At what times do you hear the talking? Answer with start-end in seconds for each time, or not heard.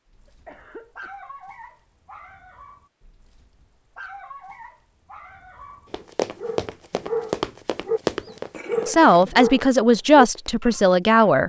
8.8-11.4.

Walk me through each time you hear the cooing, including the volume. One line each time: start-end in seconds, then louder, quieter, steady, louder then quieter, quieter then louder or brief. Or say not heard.
not heard.